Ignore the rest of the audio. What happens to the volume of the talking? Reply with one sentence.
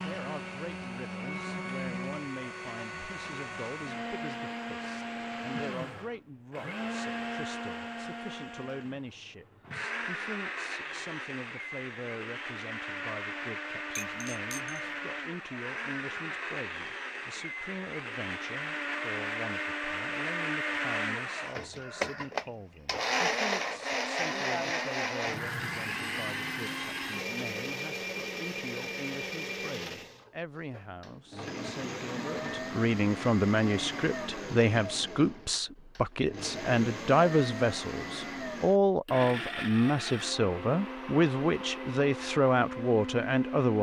The volume of the talking goes up.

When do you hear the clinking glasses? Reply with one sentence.
The clinking glasses can be heard from 13.9 to 14.9 s.